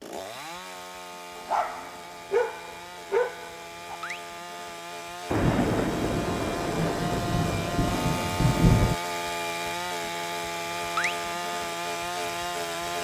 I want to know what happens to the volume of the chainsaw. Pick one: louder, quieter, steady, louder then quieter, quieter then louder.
louder.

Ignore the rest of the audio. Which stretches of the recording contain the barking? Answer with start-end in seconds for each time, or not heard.
1.4-4.0.